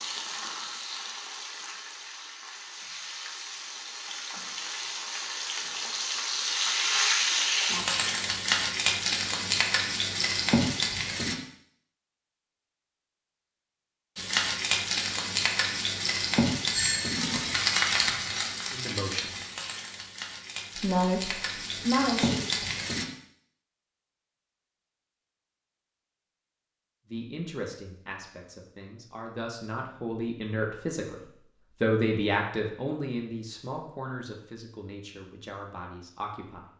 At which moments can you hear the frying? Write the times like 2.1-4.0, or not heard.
0.0-11.3, 14.2-23.1.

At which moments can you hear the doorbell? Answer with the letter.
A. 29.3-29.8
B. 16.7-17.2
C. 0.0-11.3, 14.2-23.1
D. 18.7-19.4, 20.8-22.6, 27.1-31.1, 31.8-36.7
B.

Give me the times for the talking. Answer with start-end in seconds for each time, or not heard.
18.7-19.4, 20.8-22.6, 27.1-31.1, 31.8-36.7.